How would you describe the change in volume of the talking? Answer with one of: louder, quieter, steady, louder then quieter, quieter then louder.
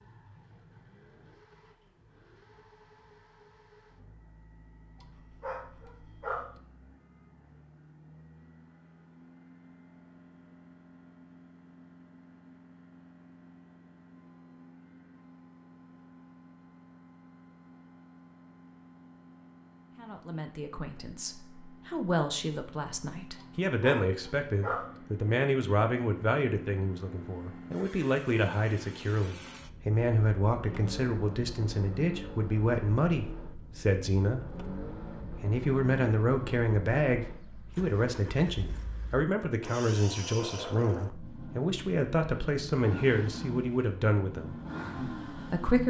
steady.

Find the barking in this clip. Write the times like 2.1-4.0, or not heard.
5.0-6.5, 23.4-24.9.